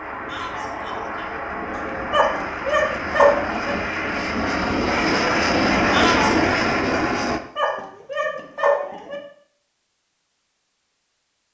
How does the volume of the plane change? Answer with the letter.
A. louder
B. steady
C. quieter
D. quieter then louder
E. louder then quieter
A.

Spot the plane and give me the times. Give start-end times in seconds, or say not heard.
0.0-7.4.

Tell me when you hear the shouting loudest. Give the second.
6 s.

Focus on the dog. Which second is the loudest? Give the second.
3 s.